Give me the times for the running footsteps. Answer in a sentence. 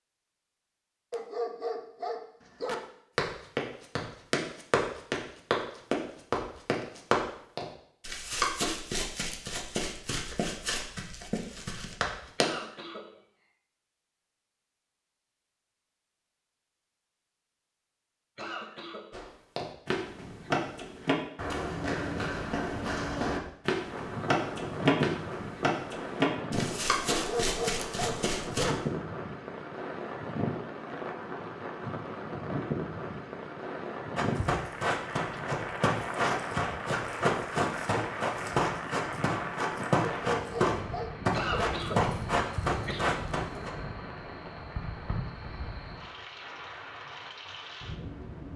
The running footsteps can be heard from 3.1 to 12.6 s, from 19.1 to 28.7 s and from 34.1 to 43.7 s.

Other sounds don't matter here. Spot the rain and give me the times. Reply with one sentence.
The rain can be heard from 23.7 to 48.5 s.